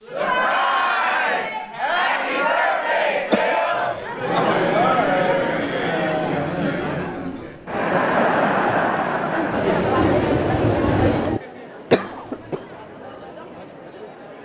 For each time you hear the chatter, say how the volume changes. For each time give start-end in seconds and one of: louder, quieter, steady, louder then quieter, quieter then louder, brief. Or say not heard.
0.0-14.4 quieter.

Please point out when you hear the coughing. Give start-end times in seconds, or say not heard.
3.3-4.4, 11.9-12.6.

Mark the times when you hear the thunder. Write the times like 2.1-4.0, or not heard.
9.5-11.4.